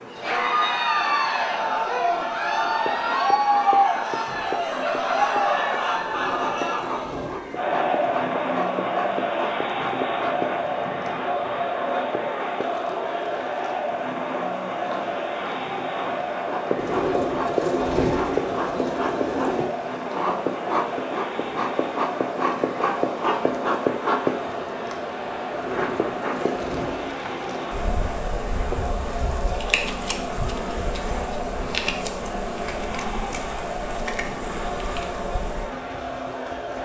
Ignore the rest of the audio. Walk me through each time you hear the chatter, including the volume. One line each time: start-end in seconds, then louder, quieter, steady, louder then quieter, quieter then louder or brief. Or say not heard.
0.0-36.8 quieter.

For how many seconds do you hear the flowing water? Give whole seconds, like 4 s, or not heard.
not heard.